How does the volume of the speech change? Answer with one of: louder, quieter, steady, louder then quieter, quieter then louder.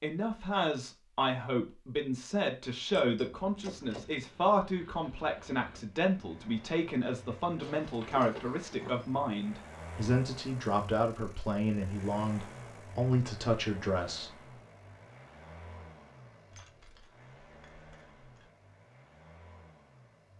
steady.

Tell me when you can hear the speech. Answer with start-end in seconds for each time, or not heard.
0.0-14.4.